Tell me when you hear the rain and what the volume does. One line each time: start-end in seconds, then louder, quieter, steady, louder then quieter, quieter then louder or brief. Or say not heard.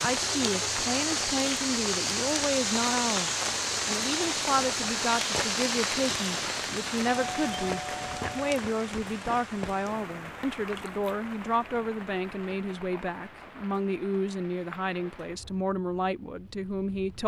0.0-17.2 quieter.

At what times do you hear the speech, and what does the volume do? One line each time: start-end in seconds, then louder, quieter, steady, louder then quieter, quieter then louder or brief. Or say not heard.
0.0-17.2 steady.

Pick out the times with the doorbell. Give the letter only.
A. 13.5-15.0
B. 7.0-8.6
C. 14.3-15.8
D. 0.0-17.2
B.